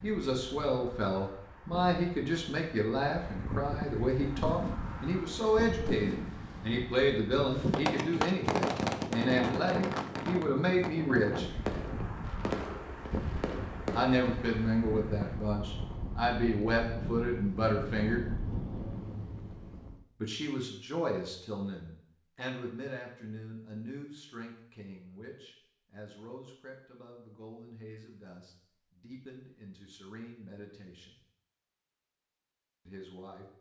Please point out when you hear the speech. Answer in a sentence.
You can hear the speech from 0.0 to 11.4 s, from 13.9 to 18.2 s, from 20.2 to 31.2 s and from 32.9 to 33.5 s.